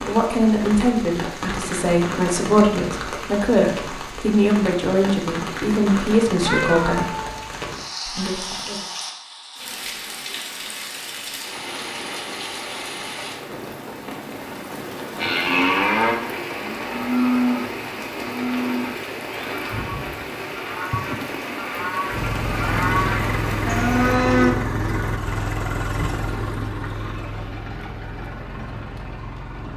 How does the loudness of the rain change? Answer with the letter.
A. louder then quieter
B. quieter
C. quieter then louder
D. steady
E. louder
D.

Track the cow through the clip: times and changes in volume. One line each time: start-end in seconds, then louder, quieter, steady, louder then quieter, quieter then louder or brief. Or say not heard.
15.2-24.6 quieter then louder.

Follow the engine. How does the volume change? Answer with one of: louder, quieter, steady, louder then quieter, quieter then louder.
quieter.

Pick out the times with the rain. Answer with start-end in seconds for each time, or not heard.
0.0-24.1.